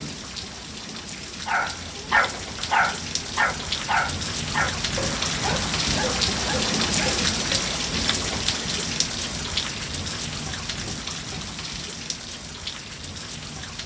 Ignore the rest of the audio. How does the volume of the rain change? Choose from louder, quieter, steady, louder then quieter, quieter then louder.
louder then quieter.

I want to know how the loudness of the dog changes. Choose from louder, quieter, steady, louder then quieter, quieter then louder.
quieter.